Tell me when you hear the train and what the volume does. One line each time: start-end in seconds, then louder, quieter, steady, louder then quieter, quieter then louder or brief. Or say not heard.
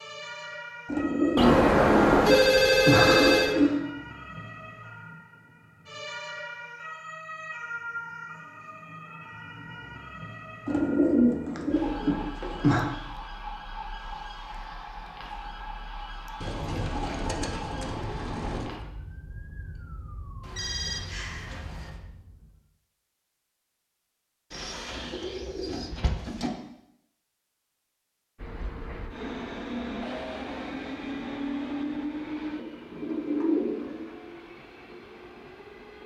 28.4-36.0 quieter.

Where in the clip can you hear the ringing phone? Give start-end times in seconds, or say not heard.
1.4-3.5, 20.4-22.0.